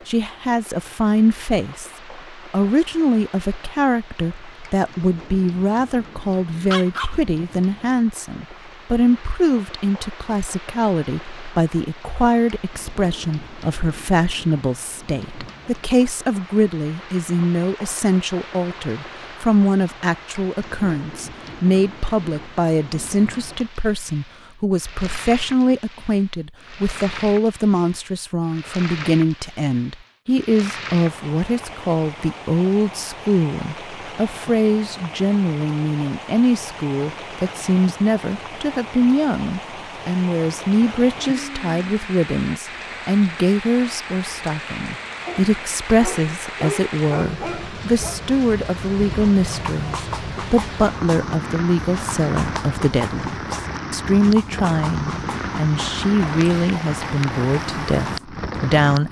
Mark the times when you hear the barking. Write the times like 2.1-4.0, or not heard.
6.7-7.9, 45.2-48.2.